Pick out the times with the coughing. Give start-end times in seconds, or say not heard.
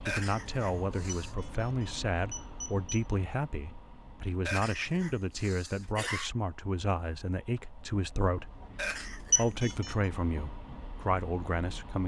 0.1-1.4, 4.5-6.3, 8.8-9.8.